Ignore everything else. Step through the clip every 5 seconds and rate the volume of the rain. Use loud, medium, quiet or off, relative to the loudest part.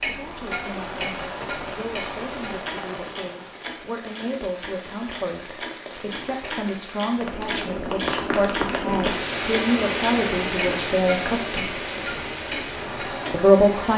medium, loud, loud.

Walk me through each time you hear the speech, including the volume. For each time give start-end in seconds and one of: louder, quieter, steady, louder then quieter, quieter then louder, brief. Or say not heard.
0.0-11.7 louder
13.3-13.9 brief.